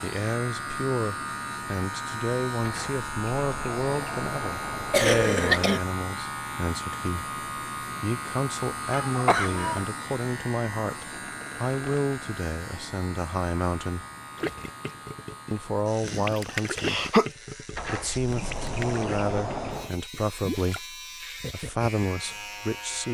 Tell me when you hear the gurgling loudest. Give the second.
17 s.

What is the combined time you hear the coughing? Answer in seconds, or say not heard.
3 s.